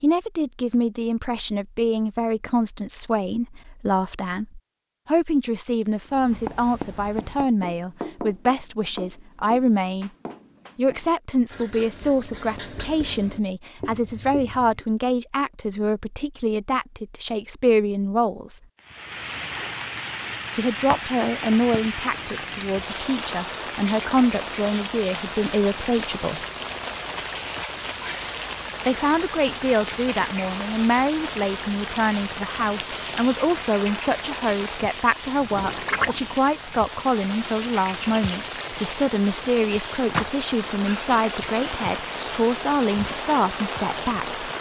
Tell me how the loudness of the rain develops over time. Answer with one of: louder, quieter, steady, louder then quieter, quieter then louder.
steady.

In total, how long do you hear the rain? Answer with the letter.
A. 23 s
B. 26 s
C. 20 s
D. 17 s
B.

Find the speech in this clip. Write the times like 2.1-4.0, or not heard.
0.0-10.1, 10.8-18.6, 20.6-26.4, 28.9-44.5.